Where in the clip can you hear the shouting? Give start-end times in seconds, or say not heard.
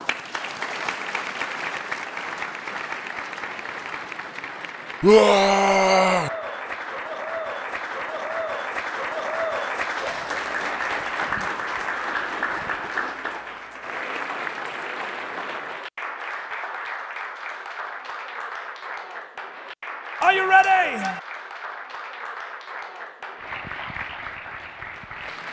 5.0-6.3, 20.2-21.2.